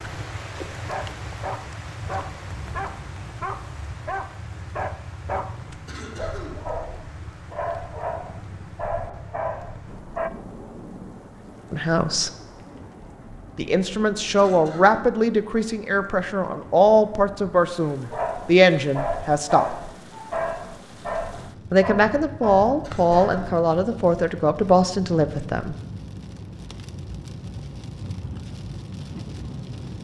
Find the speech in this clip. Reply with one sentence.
The speech can be heard from 11.7 to 12.3 s, from 13.6 to 19.8 s and from 21.7 to 25.8 s.